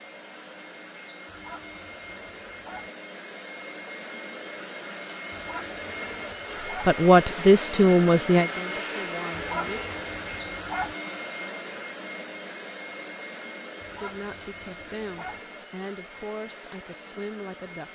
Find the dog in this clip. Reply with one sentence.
You can hear the dog from 1.2 to 2.9 s, from 5.3 to 7.0 s, from 9.3 to 10.9 s and from 13.8 to 15.4 s.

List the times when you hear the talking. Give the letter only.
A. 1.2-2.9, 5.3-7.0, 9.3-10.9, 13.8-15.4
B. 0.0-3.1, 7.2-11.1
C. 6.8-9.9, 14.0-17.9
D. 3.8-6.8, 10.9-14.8
C.